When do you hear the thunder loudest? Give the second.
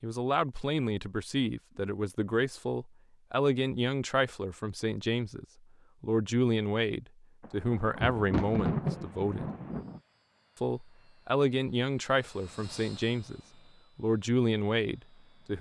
9 s.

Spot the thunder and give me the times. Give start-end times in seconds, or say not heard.
7.4-10.0.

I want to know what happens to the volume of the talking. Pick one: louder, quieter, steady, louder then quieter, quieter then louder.
steady.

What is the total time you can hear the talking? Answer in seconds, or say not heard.
14 s.